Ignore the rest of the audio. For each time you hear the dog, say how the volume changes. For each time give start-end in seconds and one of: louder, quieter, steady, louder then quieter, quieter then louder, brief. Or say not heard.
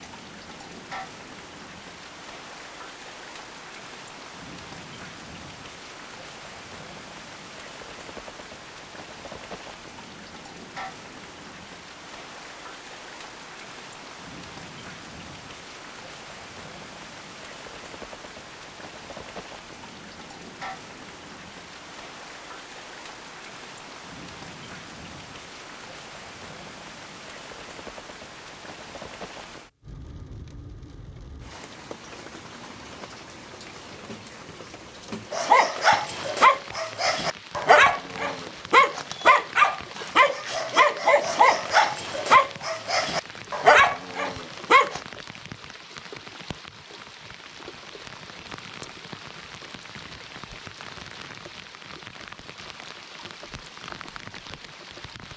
35.3-45.0 steady.